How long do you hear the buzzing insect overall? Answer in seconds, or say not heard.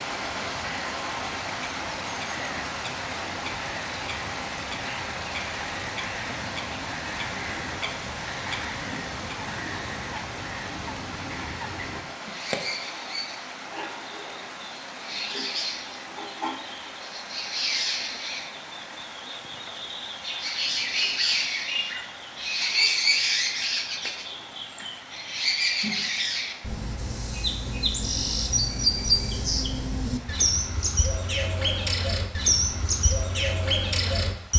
not heard.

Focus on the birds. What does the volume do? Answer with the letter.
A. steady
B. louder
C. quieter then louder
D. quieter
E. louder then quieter
B.